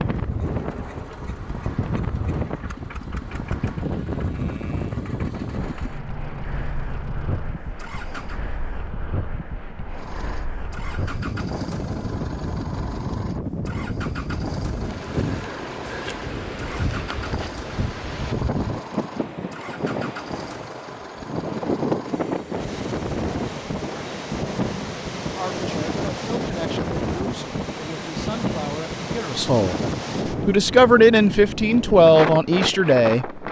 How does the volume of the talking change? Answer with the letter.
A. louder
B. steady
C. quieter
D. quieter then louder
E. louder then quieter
A.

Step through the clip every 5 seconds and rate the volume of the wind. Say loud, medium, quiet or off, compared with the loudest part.
loud, medium, loud, loud, loud, loud, loud.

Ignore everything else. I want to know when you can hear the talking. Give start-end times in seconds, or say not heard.
25.3-33.4.